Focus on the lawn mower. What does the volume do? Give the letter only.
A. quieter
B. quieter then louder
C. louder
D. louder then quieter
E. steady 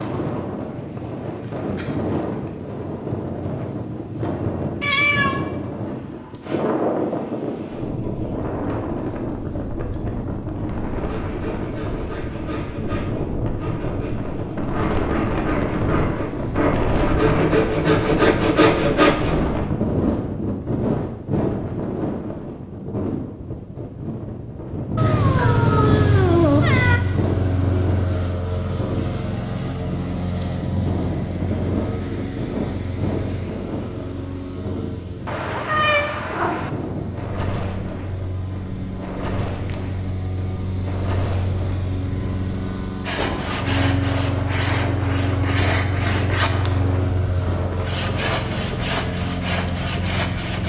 B.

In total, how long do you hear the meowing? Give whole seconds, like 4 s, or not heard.
4 s.